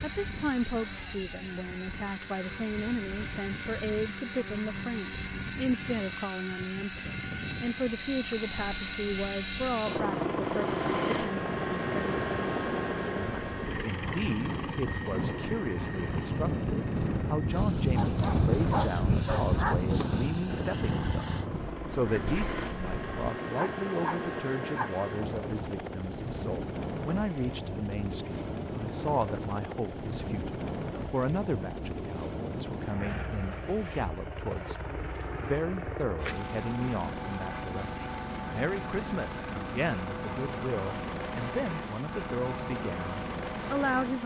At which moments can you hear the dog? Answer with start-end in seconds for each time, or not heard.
17.9-20.1, 23.6-25.1.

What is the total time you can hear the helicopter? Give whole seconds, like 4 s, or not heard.
44 s.